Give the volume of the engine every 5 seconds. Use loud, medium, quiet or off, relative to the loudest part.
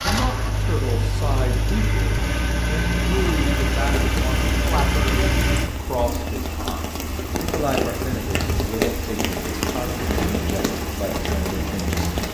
loud, loud, medium.